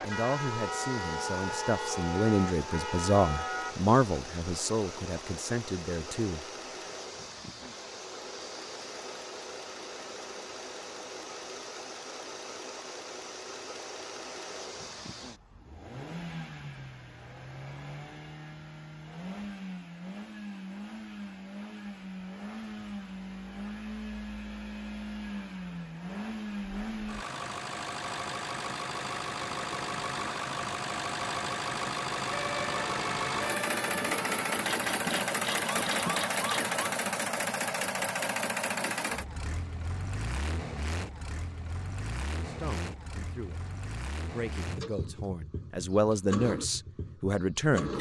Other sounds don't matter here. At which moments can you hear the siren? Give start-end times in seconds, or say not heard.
0.0-3.8, 32.3-36.8.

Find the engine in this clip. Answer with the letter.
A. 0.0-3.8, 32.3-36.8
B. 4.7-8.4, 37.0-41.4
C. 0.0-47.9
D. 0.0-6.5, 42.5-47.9
C.